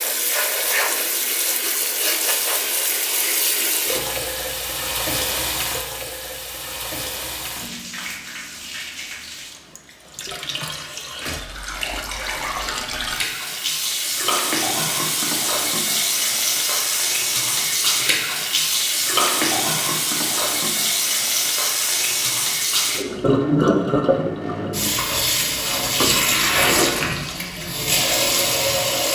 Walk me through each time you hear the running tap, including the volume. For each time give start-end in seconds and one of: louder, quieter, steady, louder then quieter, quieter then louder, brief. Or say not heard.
0.0-29.0 quieter then louder.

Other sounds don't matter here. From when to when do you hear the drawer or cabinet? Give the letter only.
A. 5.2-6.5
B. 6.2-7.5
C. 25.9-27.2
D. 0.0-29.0
C.